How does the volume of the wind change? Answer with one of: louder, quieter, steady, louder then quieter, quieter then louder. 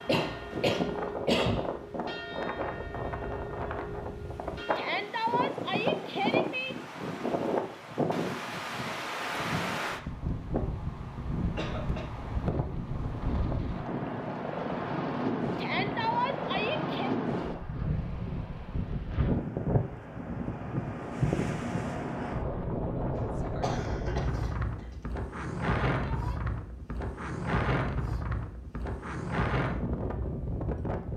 steady.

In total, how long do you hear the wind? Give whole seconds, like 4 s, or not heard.
31 s.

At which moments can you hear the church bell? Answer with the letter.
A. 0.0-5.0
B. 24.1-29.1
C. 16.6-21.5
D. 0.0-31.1
A.